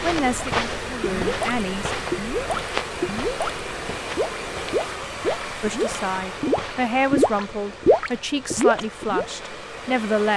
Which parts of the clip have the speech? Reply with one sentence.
The speech can be heard from 0.0 to 1.9 s and from 5.6 to 10.3 s.